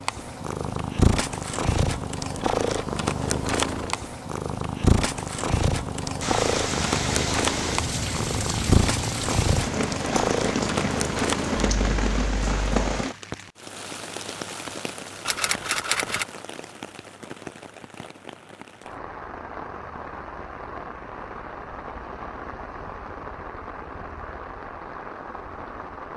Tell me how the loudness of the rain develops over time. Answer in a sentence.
The volume of the rain goes down.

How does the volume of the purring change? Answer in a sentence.
The loudness of the purring stays about the same.